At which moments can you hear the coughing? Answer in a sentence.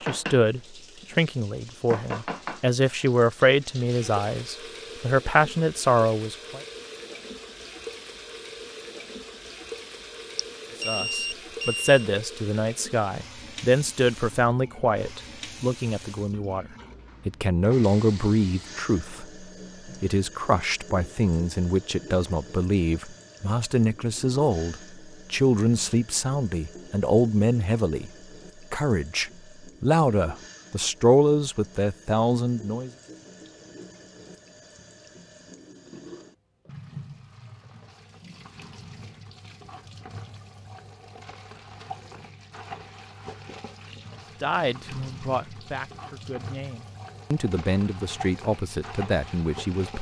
You can't hear the coughing here.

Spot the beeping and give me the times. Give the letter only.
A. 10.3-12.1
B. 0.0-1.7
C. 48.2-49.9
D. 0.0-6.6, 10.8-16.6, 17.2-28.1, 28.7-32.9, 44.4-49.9
A.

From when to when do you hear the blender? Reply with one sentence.
You can't hear the blender here.